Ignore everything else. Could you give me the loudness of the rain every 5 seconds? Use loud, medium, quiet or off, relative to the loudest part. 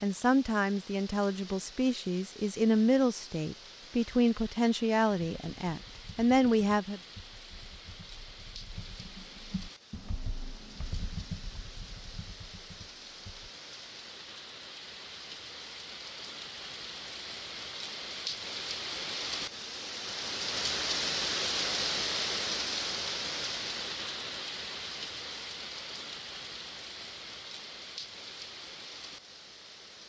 quiet, quiet, quiet, medium, loud, medium.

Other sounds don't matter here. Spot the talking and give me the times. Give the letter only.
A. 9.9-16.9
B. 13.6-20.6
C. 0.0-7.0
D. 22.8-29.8
C.